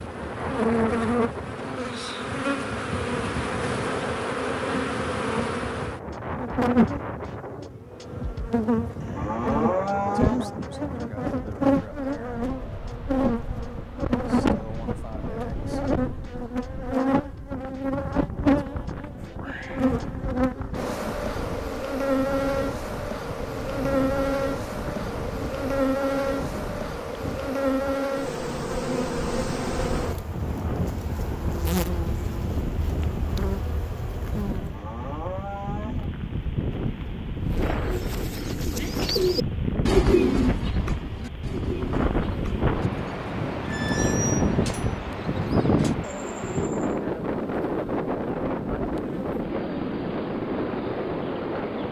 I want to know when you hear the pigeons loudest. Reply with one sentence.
The loudest moment of the pigeons is at 40 seconds.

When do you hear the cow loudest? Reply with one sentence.
The volume of the cow peaks at 10 seconds.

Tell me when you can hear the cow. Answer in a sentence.
You can hear the cow from 9.0 to 10.6 s and from 34.5 to 36.1 s.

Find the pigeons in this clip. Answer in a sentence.
You can hear the pigeons from 37.4 to 46.9 s.